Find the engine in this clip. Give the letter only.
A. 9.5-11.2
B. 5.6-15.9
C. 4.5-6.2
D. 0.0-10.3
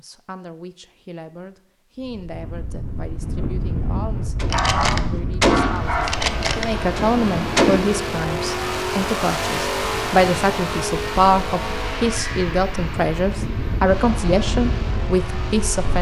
B.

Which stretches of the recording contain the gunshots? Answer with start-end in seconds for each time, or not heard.
4.4-7.8.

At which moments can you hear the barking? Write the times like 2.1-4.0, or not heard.
4.5-6.2.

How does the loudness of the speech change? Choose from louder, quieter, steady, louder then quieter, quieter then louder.
louder.